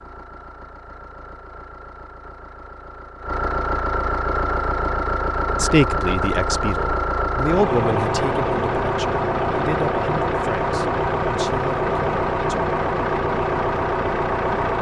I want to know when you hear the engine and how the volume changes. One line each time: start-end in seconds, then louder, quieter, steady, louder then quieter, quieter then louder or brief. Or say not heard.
0.0-14.7 louder.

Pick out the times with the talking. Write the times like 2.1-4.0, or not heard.
5.5-12.7.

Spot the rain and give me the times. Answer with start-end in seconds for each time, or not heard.
not heard.